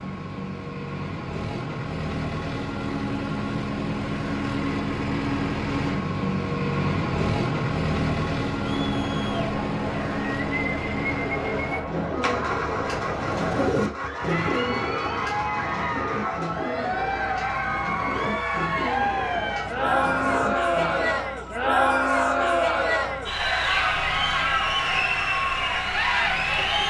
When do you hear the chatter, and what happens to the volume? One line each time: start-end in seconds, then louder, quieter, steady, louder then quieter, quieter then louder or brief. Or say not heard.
8.6-26.8 louder.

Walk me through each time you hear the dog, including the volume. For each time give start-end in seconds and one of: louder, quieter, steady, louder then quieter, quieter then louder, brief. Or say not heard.
not heard.